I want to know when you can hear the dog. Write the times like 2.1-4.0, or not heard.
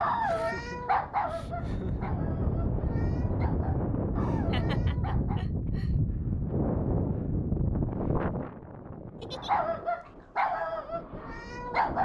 0.0-5.5, 9.3-11.9.